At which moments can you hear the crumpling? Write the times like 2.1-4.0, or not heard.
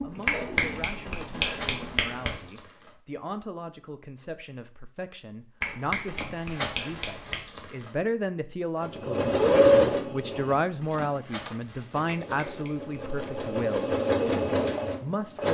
1.1-3.0, 6.0-8.0, 10.8-12.5.